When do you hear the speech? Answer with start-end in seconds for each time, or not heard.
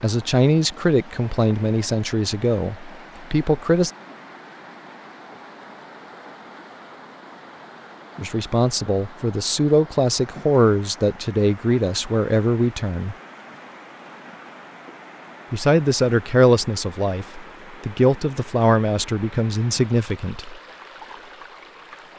0.0-3.9, 8.2-13.2, 15.5-20.6.